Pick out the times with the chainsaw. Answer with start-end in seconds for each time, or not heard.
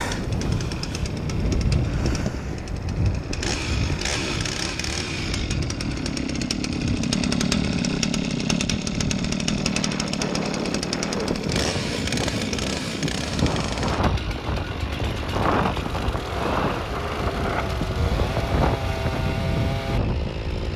0.0-20.7.